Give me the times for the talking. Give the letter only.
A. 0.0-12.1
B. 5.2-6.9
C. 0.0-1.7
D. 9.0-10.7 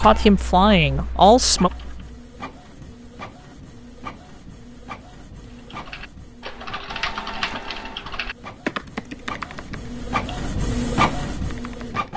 C.